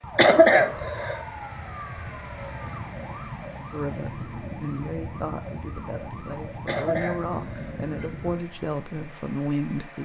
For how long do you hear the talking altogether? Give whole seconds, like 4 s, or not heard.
6 s.